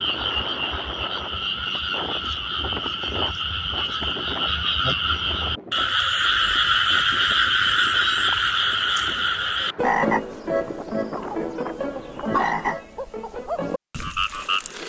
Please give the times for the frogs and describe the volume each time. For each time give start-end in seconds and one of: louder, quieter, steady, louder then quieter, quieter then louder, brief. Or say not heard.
0.0-14.8 louder then quieter.